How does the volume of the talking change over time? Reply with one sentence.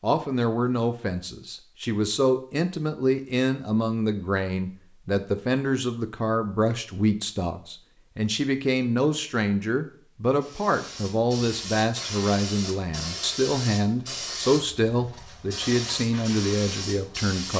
The volume of the talking stays about the same.